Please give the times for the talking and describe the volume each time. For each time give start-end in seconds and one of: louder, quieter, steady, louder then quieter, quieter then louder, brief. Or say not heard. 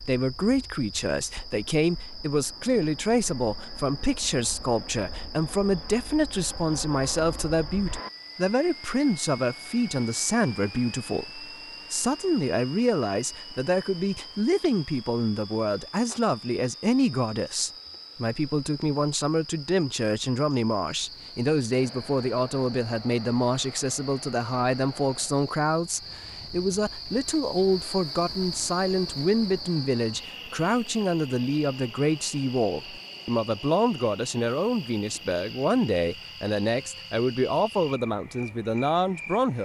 0.1-39.5 steady.